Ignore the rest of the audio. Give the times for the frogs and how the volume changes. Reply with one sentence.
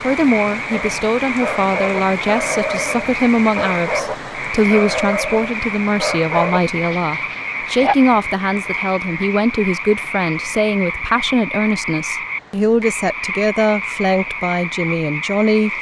The frogs can be heard from 0.0 to 15.7 s, at a steady volume.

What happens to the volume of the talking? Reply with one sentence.
The volume of the talking stays about the same.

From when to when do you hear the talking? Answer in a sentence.
The talking can be heard from 0.0 to 15.7 s.